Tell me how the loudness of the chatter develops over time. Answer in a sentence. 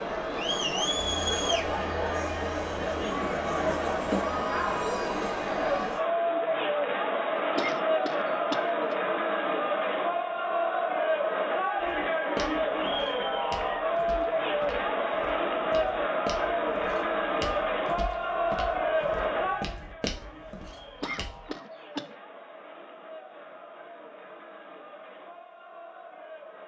The volume of the chatter goes down.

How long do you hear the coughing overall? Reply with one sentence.
You can hear the coughing for 3 seconds altogether.